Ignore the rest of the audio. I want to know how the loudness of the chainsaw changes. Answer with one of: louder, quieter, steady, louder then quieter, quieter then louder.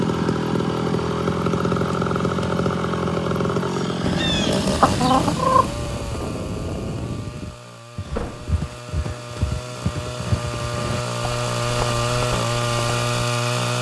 quieter then louder.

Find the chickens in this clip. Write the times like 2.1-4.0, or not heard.
4.0-5.8.